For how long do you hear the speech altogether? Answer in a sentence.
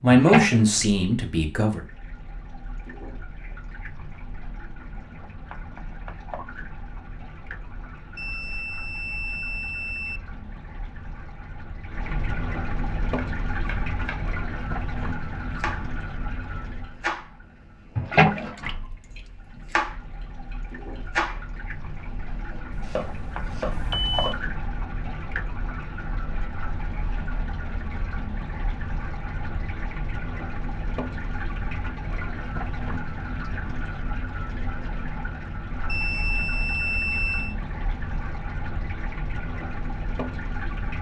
You can hear the speech for 2 seconds altogether.